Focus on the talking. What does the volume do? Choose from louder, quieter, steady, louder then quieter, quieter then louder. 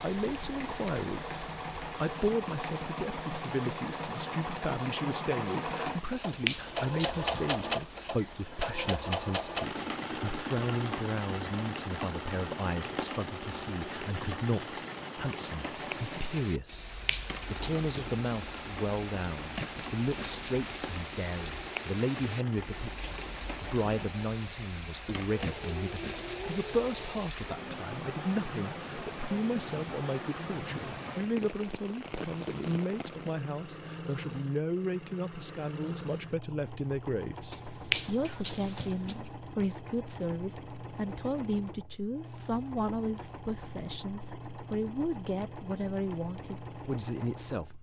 steady.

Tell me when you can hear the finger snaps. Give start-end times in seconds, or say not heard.
6.0-7.6, 16.6-18.3, 37.5-39.3.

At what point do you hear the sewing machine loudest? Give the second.
7 s.